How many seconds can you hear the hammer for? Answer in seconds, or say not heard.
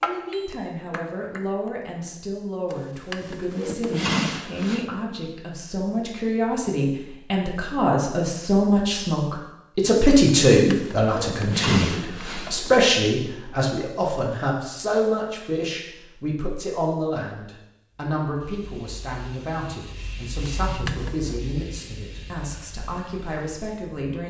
2 s.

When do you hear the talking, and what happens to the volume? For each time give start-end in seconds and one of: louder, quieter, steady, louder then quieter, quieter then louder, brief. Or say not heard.
0.0-24.2 louder then quieter.